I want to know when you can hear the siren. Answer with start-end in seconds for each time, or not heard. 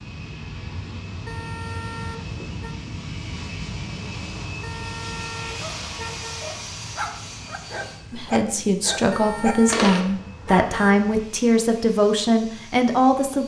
not heard.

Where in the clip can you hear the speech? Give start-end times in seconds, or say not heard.
8.1-13.4.